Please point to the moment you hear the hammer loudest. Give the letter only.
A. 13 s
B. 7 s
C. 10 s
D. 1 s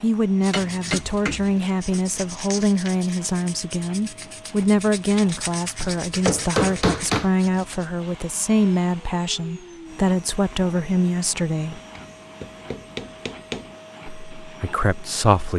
B.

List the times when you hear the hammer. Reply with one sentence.
The hammer can be heard from 0.5 to 1.5 s, from 5.8 to 7.3 s and from 11.7 to 13.7 s.